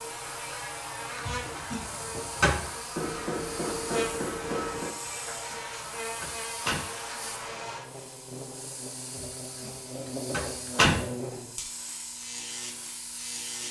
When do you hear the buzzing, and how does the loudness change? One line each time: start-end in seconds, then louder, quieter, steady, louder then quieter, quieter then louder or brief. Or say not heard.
0.0-13.6 steady.